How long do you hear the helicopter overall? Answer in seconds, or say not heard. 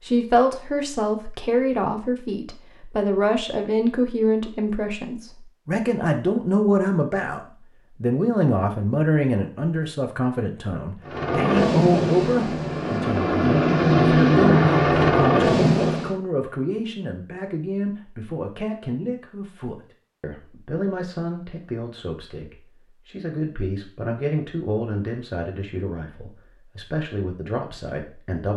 5 s.